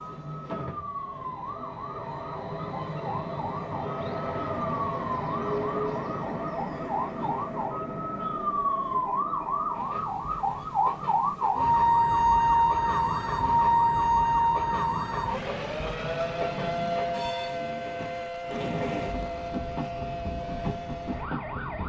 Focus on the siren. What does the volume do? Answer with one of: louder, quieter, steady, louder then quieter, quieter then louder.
louder then quieter.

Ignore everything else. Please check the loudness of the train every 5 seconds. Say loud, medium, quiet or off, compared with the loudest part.
loud, loud, medium, loud, loud.